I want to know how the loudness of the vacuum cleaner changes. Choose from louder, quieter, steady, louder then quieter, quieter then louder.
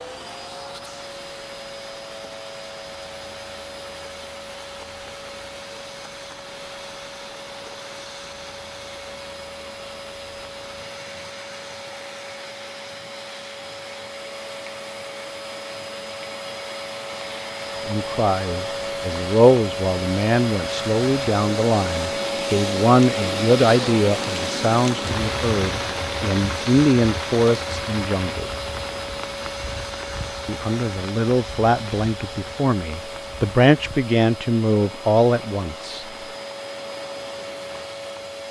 louder then quieter.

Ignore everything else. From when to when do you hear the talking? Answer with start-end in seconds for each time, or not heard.
17.9-28.6, 30.4-36.0.